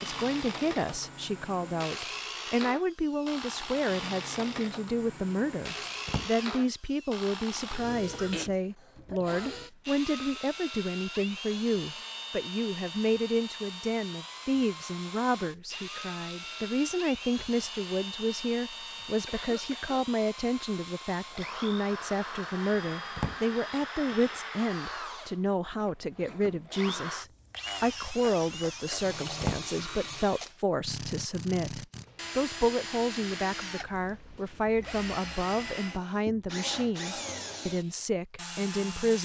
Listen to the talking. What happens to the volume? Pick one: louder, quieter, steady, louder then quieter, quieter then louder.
steady.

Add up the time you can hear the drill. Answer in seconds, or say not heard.
39 s.